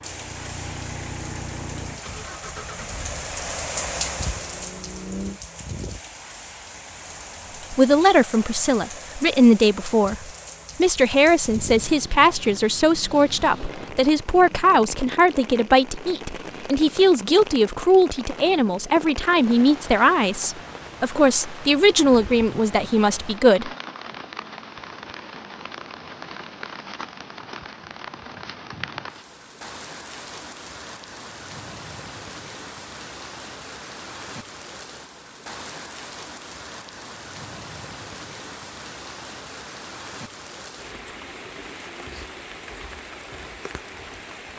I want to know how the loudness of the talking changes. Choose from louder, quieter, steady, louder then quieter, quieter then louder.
steady.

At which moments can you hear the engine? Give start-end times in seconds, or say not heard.
0.0-5.4.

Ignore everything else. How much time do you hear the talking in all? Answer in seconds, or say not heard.
16 s.